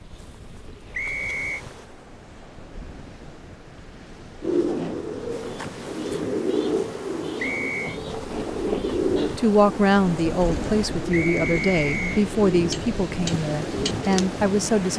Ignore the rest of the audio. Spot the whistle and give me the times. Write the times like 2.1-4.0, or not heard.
0.9-1.6, 7.3-8.0, 11.1-12.2.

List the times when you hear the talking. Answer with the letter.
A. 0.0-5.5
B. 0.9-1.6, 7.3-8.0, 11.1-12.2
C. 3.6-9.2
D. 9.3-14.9
D.